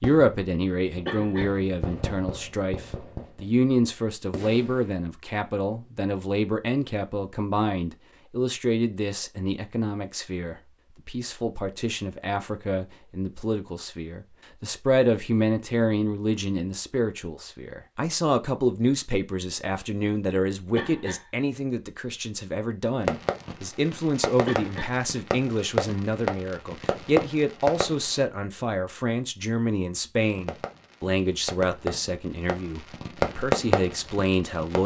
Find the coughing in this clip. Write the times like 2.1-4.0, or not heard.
1.1-1.6, 20.8-21.3, 24.4-25.0.